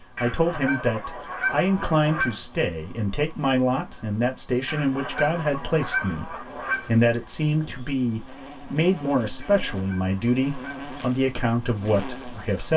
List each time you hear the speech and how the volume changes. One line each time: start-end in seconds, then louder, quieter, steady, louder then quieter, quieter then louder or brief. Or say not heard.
0.2-12.7 steady.